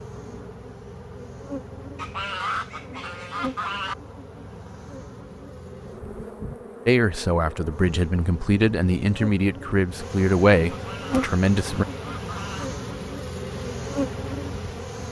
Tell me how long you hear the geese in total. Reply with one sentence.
The geese can be heard for 4 seconds in total.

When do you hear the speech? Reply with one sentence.
You can hear the speech from 6.8 to 11.8 s.